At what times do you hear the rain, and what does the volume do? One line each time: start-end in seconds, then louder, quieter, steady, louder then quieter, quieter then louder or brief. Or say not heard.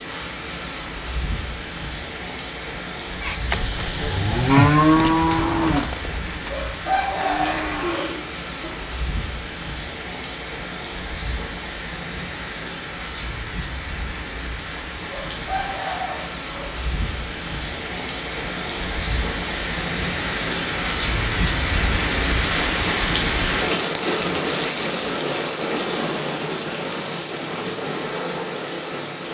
0.0-29.2 louder.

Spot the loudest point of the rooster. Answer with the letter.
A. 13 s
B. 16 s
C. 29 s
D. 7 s
D.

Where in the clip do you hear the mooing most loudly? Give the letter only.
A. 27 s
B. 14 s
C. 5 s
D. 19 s
C.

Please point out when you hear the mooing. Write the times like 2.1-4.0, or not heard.
3.2-8.9.